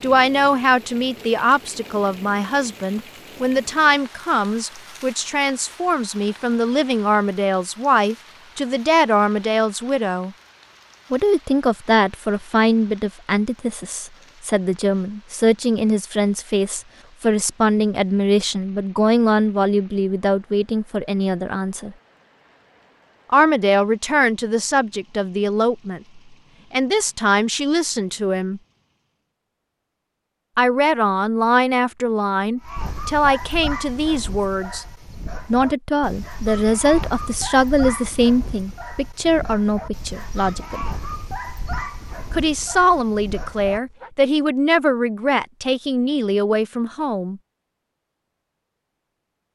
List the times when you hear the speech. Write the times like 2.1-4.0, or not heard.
0.0-10.3, 11.1-21.9, 23.3-28.6, 30.6-34.9, 35.5-40.9, 42.3-47.4.